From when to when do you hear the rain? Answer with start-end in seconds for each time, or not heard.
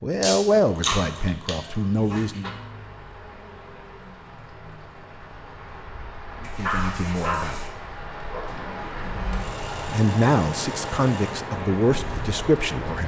2.5-13.0.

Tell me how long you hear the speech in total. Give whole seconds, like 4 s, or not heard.
7 s.